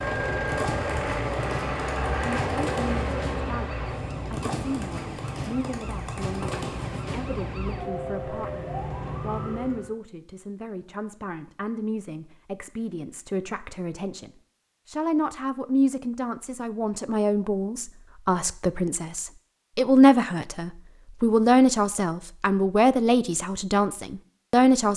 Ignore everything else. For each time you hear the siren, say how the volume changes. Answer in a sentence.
The siren can be heard from 0.0 to 9.9 s, at a steady volume.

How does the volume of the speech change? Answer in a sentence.
The loudness of the speech goes up.